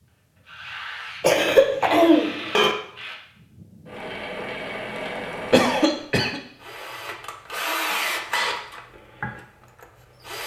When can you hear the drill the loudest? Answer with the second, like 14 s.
8 s.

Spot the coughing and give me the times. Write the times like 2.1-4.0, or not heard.
1.2-2.8, 5.5-6.4.